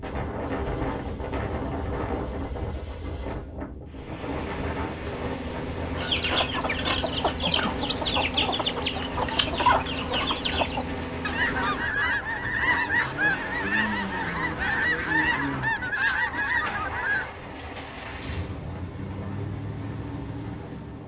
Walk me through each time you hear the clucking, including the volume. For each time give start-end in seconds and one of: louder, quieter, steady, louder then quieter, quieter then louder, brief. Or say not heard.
6.0-17.3 steady.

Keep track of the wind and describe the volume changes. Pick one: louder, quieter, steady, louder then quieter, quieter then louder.
quieter.